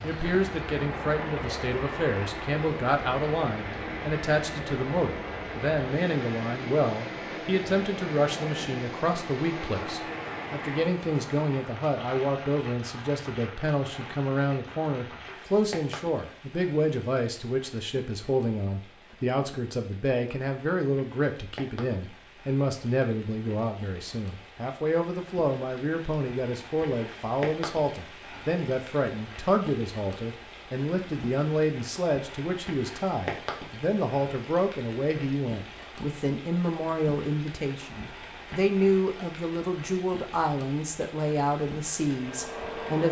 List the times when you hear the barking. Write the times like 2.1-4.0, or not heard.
not heard.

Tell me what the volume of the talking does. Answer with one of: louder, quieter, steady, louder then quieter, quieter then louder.
steady.